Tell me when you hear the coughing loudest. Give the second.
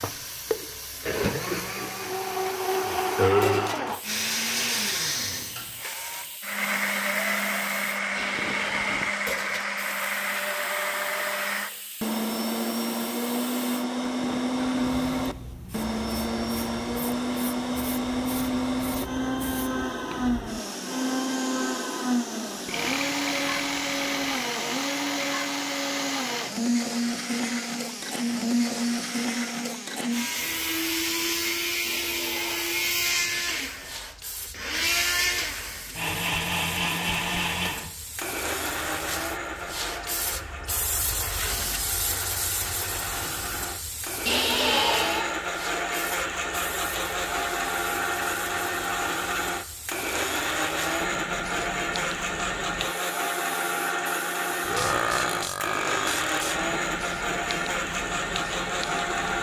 45 s.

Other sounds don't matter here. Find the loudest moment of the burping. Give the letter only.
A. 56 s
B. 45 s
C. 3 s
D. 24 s
C.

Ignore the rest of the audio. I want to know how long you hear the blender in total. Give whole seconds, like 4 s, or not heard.
59 s.